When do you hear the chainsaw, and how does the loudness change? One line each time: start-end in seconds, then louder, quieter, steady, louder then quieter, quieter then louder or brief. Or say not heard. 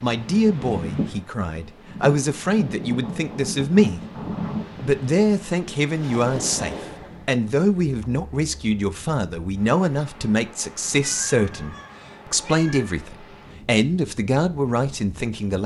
not heard.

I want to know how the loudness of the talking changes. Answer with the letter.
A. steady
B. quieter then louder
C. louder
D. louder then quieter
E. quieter
A.